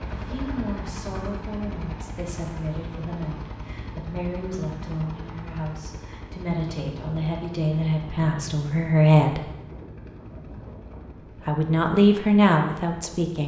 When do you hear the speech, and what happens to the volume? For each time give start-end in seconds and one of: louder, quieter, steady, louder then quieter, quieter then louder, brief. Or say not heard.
0.1-9.4 louder
11.4-13.4 brief.